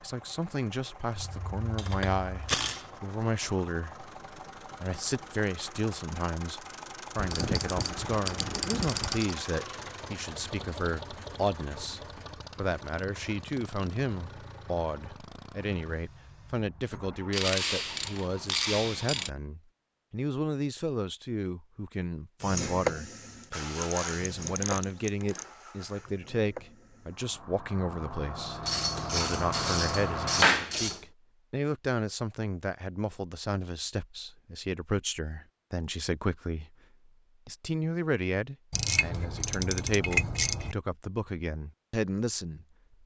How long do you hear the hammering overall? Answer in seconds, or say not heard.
not heard.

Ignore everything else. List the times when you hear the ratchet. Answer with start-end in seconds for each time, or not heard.
1.1-2.9, 7.2-9.3, 17.3-19.3, 23.8-25.4, 28.6-31.0, 38.7-40.8.